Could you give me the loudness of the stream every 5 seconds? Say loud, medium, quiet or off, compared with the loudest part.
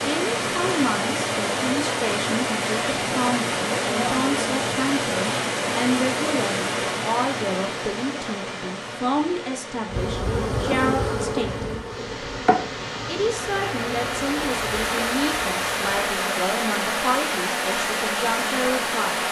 loud, loud, medium, loud.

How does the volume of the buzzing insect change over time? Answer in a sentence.
The volume of the buzzing insect goes down.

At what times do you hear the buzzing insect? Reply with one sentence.
The buzzing insect can be heard from 9.8 to 19.2 s.